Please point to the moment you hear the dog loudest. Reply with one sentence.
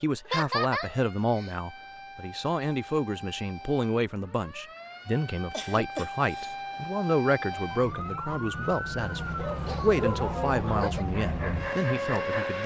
The volume of the dog peaks at 10 seconds.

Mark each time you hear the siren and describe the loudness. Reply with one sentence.
The siren can be heard from 0.0 to 12.6 s, getting louder.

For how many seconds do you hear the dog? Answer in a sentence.
You can hear the dog for 3 seconds altogether.